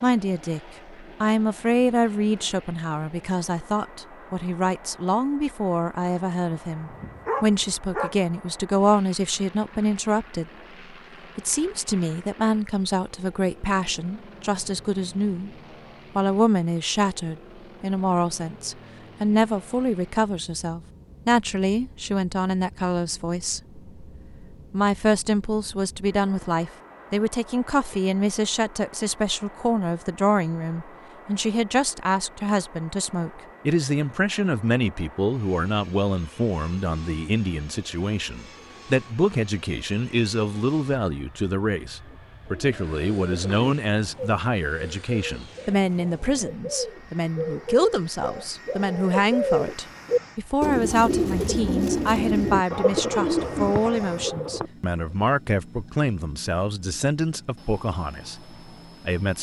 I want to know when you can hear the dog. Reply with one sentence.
You can hear the dog from 6.5 to 8.2 s.